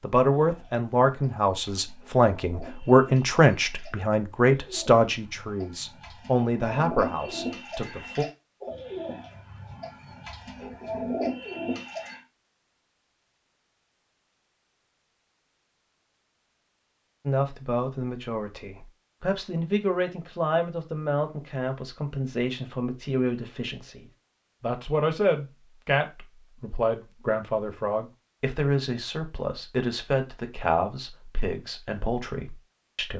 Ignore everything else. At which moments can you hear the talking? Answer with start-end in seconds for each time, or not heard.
0.0-8.2, 17.2-33.1.